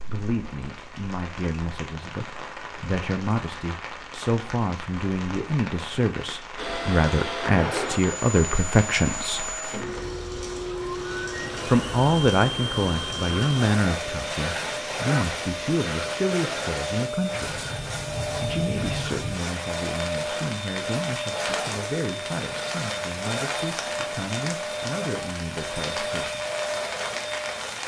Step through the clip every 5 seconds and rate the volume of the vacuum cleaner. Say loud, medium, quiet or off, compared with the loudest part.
off, loud, loud, loud, loud, loud.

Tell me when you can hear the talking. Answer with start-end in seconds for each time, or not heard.
0.0-9.6, 11.7-17.6, 18.4-26.4.